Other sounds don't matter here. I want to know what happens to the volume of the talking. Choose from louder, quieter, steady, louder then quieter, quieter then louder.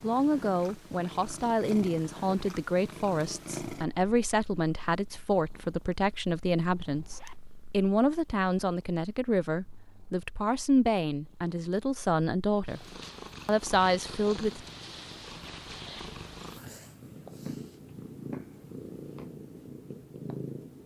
steady.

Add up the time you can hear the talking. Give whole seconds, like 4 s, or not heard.
15 s.